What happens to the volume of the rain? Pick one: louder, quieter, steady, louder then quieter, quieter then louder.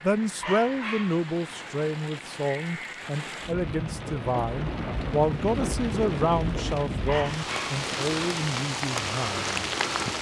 louder.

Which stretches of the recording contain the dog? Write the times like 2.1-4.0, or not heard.
0.4-1.2, 7.0-7.8.